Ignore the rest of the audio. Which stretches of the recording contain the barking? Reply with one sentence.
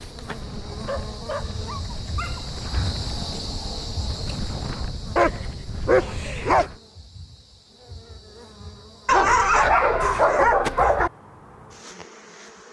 You can hear the barking from 0.8 to 2.5 s, from 5.2 to 6.7 s and from 9.1 to 11.1 s.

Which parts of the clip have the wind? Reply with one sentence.
The wind can be heard from 0.0 to 6.8 s.